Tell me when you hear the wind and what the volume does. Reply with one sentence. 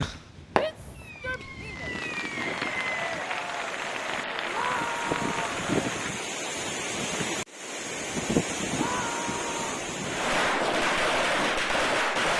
The wind can be heard from 0.0 to 10.6 s, getting louder.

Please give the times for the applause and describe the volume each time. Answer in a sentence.
You can hear the applause from 2.2 to 6.2 s, at a steady volume.